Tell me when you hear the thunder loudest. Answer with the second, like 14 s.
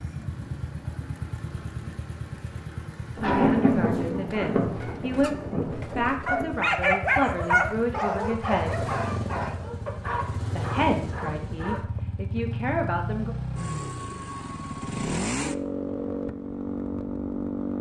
4 s.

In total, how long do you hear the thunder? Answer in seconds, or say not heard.
3 s.